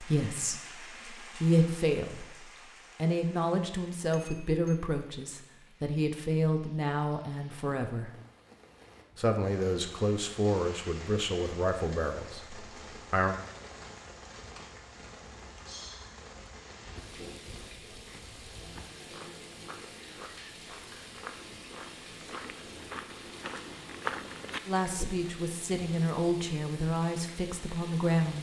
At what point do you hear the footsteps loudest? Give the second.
24 s.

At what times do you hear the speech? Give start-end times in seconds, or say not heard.
0.0-8.1, 9.2-13.3, 24.6-28.3.